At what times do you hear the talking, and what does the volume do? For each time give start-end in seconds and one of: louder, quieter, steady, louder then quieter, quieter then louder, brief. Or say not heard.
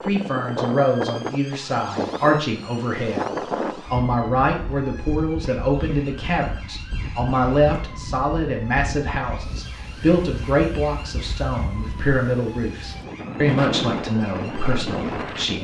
0.0-15.6 steady.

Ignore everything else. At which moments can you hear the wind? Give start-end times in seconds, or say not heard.
0.0-15.6.